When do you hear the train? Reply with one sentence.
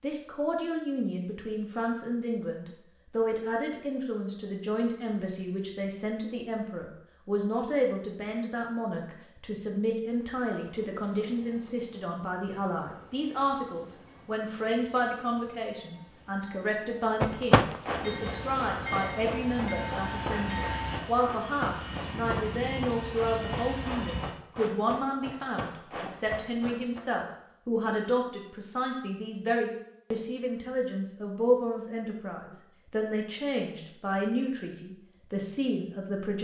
You can hear the train from 10.2 to 24.4 s.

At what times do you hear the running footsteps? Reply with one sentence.
The running footsteps can be heard from 17.2 to 27.0 s.